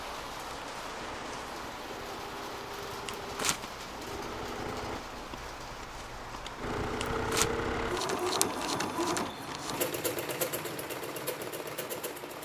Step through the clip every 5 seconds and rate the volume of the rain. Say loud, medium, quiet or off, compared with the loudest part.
loud, loud, medium.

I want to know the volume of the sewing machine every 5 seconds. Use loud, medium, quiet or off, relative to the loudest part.
medium, loud, loud.